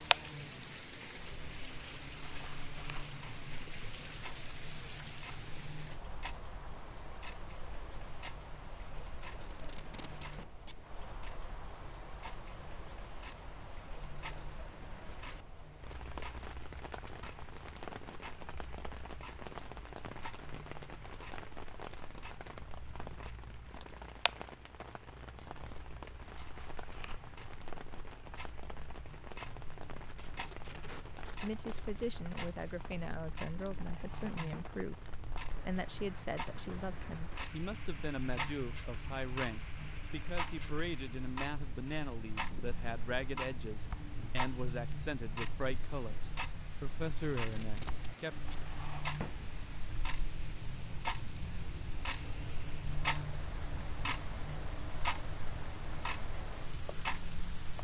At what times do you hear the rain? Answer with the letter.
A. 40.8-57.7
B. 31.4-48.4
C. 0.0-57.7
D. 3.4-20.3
C.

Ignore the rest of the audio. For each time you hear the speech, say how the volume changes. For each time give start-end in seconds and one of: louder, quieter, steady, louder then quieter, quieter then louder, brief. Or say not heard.
31.4-48.4 steady.